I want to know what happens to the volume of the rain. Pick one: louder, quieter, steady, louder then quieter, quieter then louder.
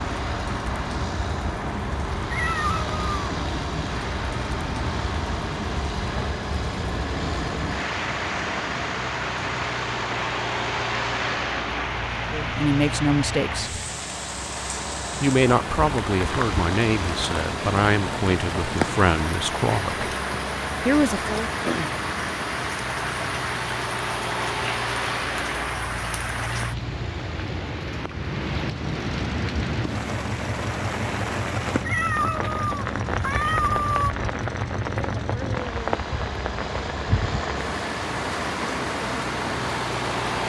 steady.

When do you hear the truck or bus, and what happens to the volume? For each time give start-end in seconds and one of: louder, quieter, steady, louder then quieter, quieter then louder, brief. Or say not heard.
0.0-40.4 steady.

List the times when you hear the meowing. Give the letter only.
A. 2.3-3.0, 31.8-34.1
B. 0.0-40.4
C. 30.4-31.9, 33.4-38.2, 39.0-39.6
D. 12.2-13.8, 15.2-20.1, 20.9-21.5
A.